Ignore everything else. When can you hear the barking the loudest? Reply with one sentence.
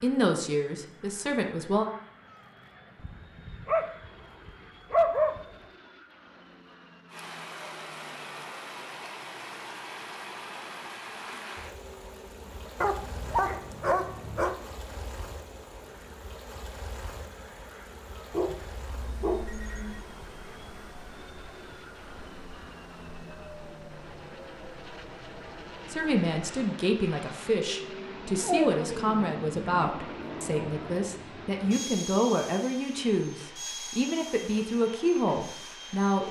The volume of the barking peaks at 5 seconds.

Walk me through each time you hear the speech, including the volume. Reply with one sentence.
You can hear the speech briefly from 0.0 to 1.9 s; and from 25.9 to 36.2 s, at a steady volume.